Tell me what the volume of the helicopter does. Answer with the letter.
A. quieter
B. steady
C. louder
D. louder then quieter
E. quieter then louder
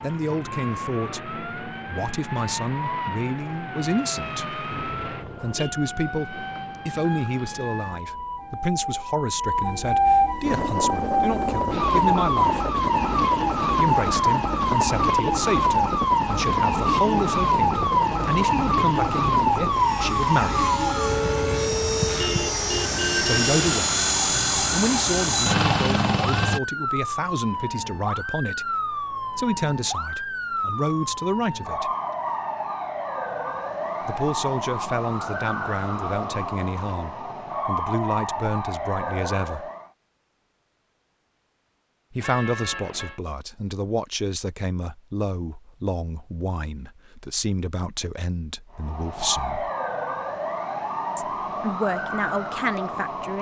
C.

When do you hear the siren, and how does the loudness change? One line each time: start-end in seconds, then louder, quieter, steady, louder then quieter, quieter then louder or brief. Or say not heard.
0.0-39.9 louder then quieter
48.8-53.3 steady.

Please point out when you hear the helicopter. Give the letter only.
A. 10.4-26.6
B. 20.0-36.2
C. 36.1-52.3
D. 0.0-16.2
A.